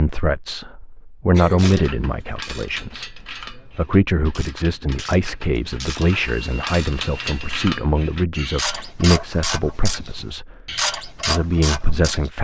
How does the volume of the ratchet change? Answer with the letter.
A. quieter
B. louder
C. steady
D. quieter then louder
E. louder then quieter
B.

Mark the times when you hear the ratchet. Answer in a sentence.
The ratchet can be heard from 1.6 to 12.3 s.